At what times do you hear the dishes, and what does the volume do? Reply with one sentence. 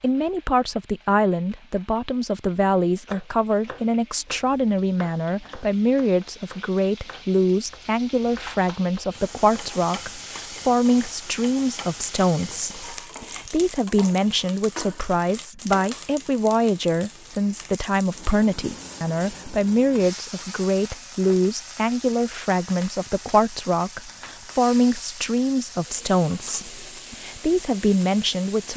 The dishes can't be heard in this clip.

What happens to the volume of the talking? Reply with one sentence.
The volume of the talking stays about the same.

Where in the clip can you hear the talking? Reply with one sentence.
You can hear the talking from 0.0 to 28.7 s.